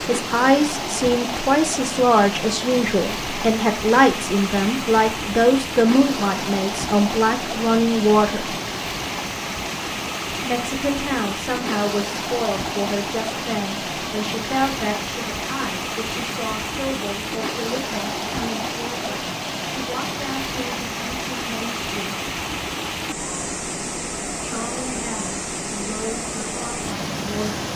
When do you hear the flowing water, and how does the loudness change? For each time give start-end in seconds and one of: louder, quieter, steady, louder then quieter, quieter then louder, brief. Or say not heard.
0.0-27.7 steady.